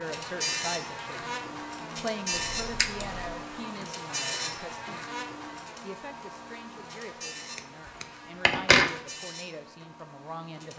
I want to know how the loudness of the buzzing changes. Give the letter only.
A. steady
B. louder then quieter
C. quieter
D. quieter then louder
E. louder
C.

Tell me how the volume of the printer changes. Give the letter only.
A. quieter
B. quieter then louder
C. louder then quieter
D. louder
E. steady
A.